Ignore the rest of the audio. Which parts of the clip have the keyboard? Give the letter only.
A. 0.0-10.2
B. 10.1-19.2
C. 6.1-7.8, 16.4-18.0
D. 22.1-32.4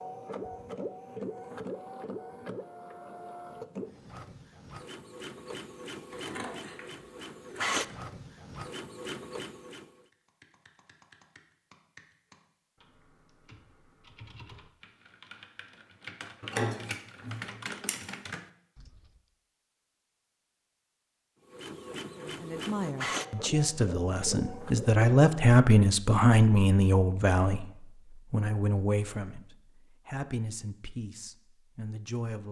B.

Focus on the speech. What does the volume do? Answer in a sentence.
The volume of the speech goes up, then down.